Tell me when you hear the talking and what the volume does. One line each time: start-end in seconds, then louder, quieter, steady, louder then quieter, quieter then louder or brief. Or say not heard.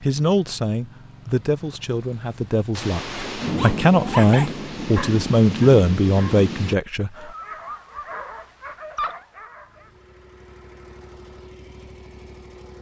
0.0-7.1 louder.